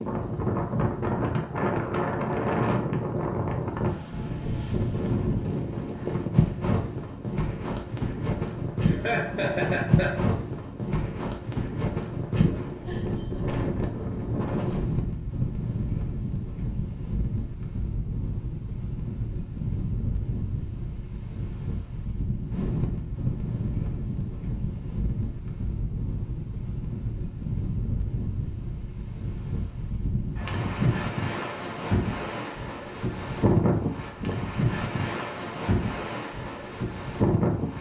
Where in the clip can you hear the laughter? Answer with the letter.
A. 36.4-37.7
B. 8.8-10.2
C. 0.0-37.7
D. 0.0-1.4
B.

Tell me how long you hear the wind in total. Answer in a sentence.
The wind can be heard for 38 seconds in total.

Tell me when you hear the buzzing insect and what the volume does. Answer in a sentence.
The buzzing insect can't be heard in this clip.